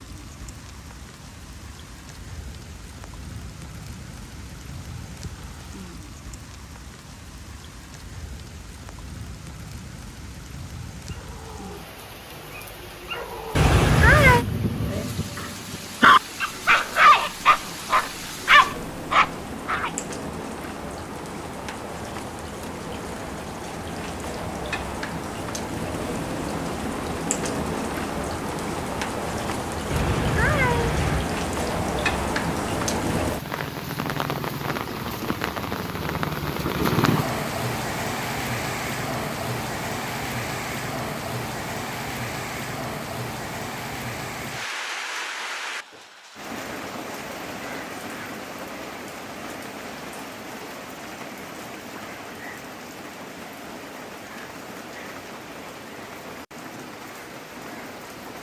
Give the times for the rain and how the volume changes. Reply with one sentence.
The rain can be heard from 0.0 to 58.3 s, getting louder then quieter.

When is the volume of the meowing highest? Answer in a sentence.
The volume of the meowing peaks at 14 seconds.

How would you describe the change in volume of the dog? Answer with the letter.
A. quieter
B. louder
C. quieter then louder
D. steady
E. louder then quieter
B.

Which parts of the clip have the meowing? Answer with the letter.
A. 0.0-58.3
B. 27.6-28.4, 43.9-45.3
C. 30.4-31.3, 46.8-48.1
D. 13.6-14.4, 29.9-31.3
D.